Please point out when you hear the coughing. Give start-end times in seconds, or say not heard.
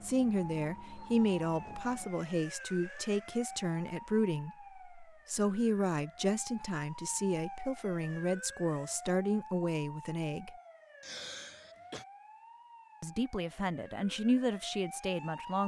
11.0-12.1.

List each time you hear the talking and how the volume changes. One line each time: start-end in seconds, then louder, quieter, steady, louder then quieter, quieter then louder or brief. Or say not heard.
0.0-10.6 steady
13.0-15.6 brief.